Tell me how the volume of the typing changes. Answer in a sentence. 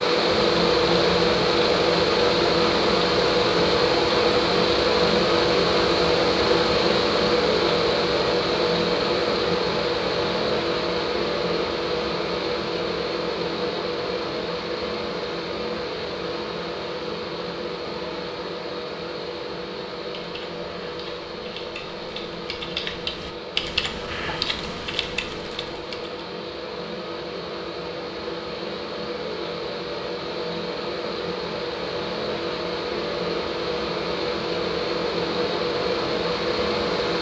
The loudness of the typing goes up, then down.